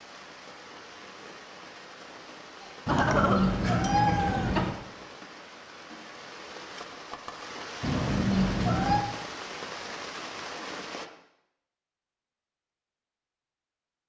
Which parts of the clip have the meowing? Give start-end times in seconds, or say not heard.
2.9-4.8, 7.8-9.1.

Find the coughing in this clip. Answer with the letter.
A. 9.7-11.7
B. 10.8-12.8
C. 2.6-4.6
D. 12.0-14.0
C.